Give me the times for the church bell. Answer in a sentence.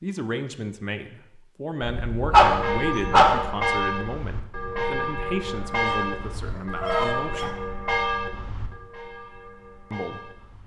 The church bell can be heard from 2.4 to 10.6 s.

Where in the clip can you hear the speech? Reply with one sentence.
The speech can be heard from 0.0 to 7.5 s and from 9.9 to 10.3 s.